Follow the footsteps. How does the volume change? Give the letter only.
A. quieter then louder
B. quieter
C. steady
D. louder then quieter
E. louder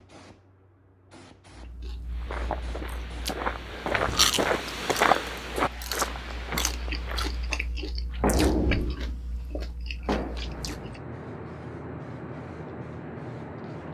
D.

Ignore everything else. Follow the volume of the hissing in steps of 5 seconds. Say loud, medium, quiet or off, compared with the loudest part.
quiet, loud, loud.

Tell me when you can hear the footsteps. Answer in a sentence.
The footsteps can be heard from 2.1 to 7.7 s.